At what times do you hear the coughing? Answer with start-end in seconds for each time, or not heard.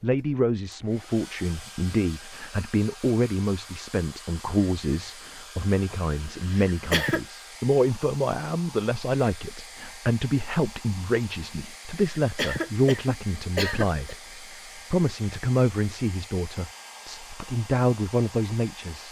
6.5-7.2, 12.2-14.2.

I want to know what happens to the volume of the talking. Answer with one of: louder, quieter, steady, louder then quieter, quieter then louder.
steady.